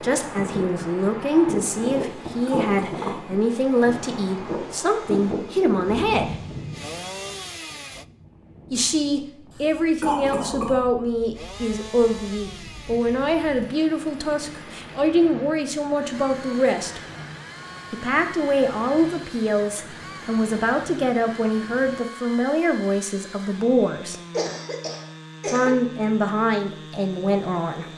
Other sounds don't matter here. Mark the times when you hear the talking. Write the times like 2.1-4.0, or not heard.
0.0-6.3, 8.7-17.0, 17.9-24.1, 25.5-27.9.